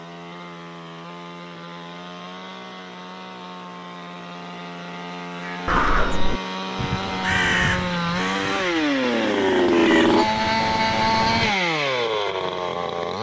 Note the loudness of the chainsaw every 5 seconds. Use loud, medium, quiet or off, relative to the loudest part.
quiet, loud, loud.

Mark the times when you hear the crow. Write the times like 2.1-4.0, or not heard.
5.4-11.6.